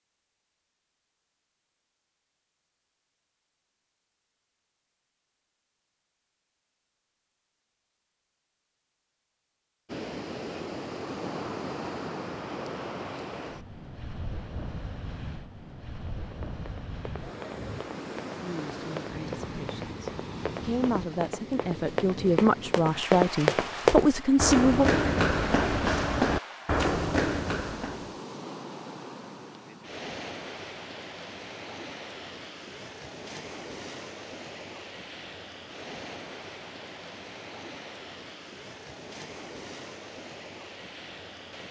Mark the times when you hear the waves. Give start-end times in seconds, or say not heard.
9.8-41.6.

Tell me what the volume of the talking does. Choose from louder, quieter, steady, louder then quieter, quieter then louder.
louder.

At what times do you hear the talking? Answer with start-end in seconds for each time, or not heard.
18.4-24.9.